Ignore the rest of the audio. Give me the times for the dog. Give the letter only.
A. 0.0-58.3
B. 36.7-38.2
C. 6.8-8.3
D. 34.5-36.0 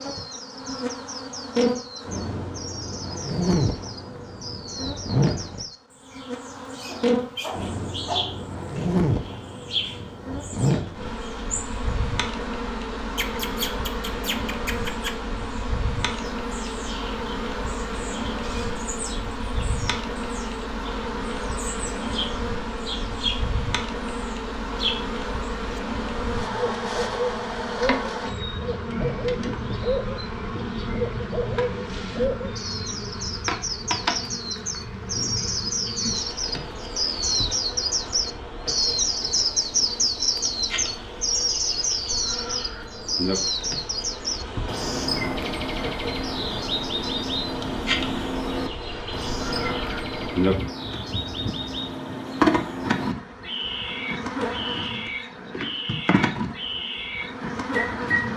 C.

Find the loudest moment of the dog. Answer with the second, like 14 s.
8 s.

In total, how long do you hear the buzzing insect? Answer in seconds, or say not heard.
58 s.